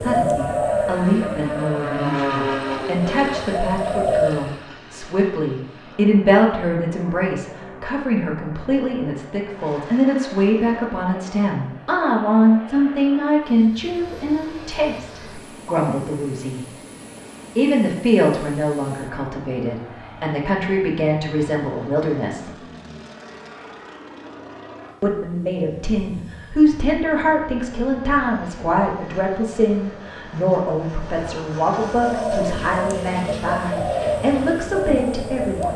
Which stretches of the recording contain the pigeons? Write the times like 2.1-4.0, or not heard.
0.0-4.5, 31.9-35.7.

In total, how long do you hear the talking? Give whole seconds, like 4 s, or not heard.
32 s.